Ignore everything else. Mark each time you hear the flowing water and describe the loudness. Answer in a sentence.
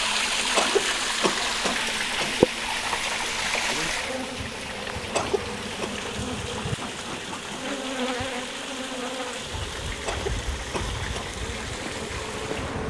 The flowing water can be heard from 0.0 to 12.8 s, getting quieter.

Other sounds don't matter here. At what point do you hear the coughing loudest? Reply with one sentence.
The loudest moment of the coughing is at 1 second.